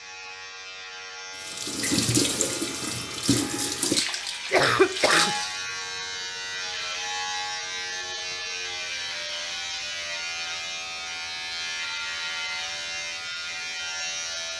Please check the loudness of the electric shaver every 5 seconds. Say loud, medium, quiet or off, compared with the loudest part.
medium, loud, loud.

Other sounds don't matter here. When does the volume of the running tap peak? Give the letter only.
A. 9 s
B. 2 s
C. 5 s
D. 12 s
B.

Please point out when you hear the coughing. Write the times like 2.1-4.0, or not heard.
4.5-5.3.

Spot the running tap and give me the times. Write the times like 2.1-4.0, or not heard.
1.4-5.5.